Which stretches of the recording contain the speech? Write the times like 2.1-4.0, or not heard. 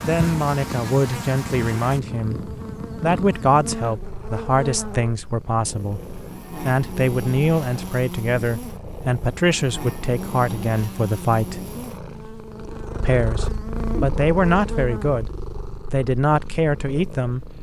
0.0-11.7, 13.0-15.3, 15.9-17.4.